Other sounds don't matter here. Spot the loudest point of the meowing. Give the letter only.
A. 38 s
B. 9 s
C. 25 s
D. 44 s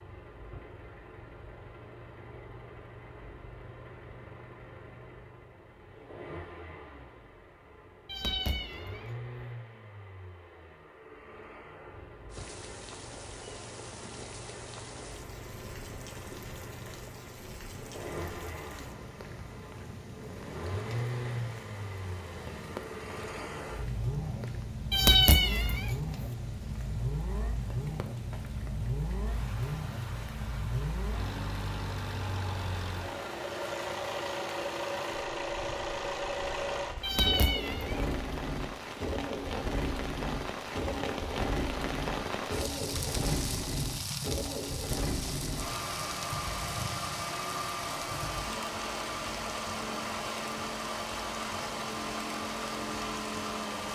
C.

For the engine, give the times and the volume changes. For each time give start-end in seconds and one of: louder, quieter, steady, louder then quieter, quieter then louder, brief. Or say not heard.
0.0-53.9 louder.